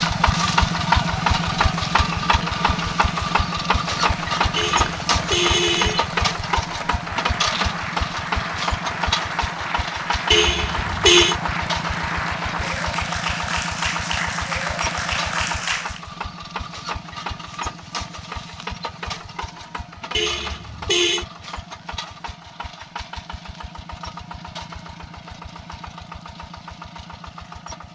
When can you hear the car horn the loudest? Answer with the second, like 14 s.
11 s.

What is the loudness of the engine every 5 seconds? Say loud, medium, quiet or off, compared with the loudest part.
loud, loud, medium, medium, quiet, quiet.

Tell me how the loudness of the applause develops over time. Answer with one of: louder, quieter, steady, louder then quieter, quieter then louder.
louder.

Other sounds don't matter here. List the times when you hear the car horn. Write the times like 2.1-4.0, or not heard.
4.5-6.1, 10.3-11.3, 20.1-21.2.